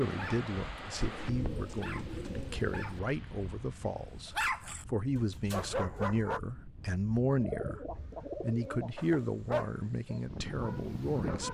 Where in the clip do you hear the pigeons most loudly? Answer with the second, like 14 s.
8 s.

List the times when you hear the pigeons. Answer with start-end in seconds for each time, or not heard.
1.0-3.0, 7.3-9.2.